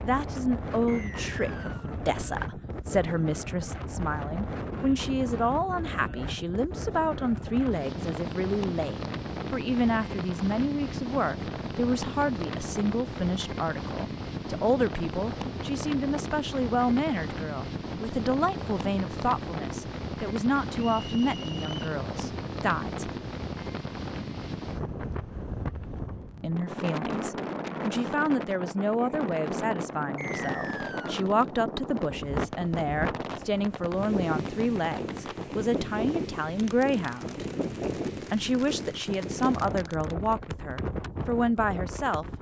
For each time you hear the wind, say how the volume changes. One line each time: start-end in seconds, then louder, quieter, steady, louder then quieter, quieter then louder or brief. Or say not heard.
0.0-42.3 steady.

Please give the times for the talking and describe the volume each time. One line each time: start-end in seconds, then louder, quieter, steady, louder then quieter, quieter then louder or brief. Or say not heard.
0.0-23.1 steady
26.4-42.2 steady.